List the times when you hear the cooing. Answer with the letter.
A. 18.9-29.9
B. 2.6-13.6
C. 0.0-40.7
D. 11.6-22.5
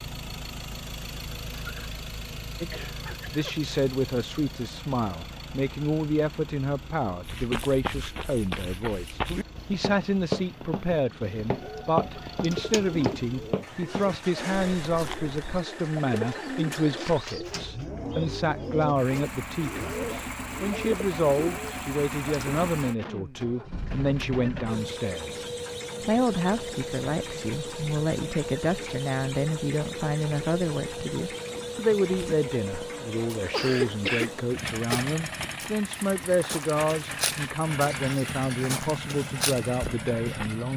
D.